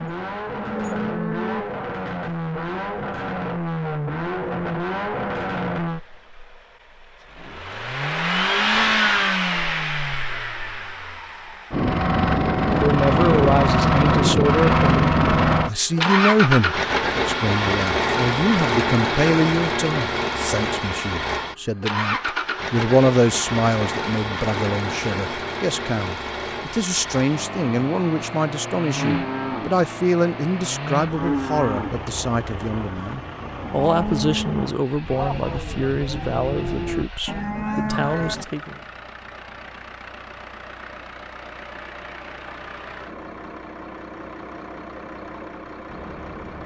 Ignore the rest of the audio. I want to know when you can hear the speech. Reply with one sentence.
You can hear the speech from 12.7 to 38.8 s.